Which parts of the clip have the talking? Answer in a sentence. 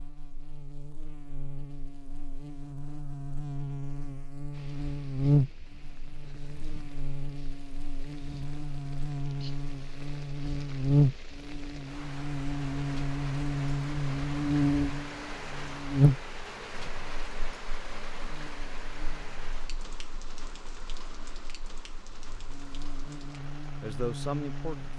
The talking can be heard from 23.8 to 24.9 s.